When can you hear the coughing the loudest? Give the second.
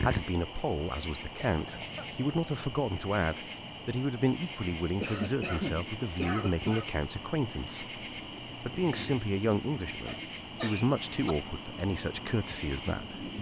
6 s.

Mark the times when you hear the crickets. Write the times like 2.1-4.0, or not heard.
0.0-13.3.